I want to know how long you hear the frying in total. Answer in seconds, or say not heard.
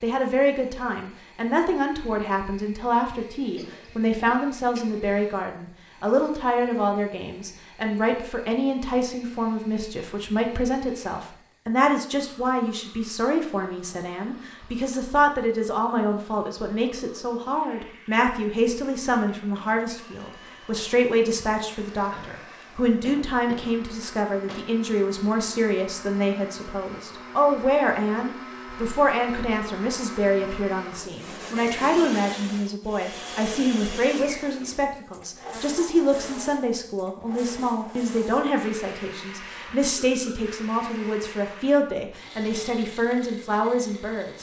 not heard.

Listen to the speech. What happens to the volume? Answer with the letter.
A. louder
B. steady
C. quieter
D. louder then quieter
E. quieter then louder
B.